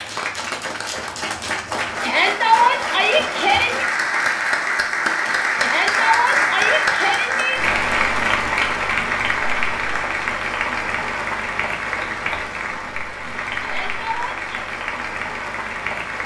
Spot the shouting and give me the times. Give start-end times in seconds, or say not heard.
2.0-3.9, 5.6-7.6, 13.6-14.7.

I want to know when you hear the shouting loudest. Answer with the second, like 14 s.
3 s.